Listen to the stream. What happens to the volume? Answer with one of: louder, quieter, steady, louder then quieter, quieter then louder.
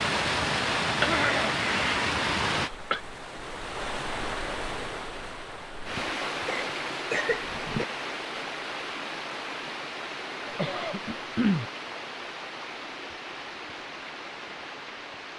quieter.